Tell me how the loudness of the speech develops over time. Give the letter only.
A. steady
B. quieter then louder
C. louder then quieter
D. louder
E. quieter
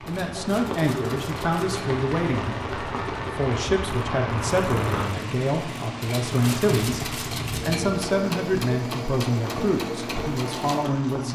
A.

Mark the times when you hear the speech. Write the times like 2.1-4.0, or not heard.
0.1-11.3.